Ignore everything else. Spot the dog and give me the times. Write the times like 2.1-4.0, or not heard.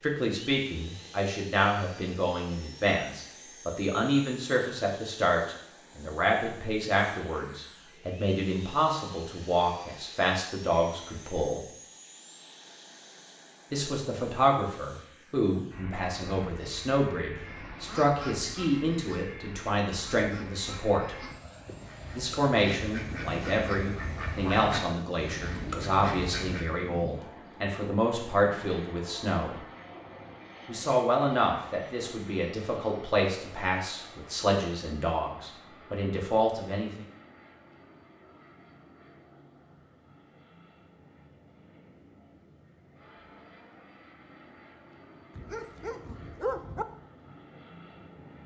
45.4-46.9.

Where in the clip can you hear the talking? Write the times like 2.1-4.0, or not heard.
0.0-11.7, 13.7-21.1, 22.1-29.6, 30.6-37.0.